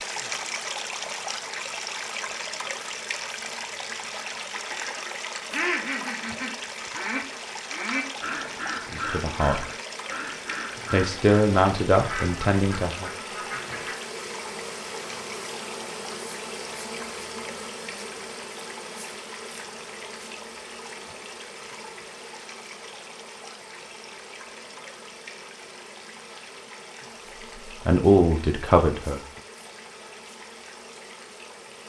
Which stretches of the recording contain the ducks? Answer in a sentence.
The ducks can be heard from 4.5 to 13.9 s.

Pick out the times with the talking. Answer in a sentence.
The talking can be heard from 8.9 to 9.7 s, from 10.9 to 13.1 s and from 27.6 to 29.2 s.